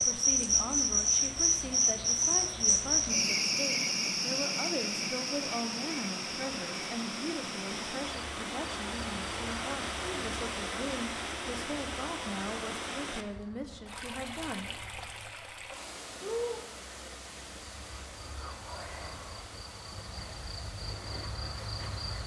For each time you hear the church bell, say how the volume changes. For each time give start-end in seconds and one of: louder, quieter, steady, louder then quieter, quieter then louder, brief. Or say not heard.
not heard.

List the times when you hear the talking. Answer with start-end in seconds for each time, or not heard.
0.0-14.7.